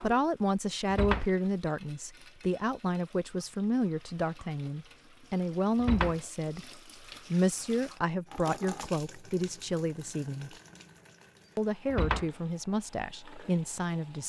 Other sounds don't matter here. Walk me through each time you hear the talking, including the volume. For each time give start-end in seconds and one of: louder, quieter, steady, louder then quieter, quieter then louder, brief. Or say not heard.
0.0-10.6 steady
11.6-14.2 brief.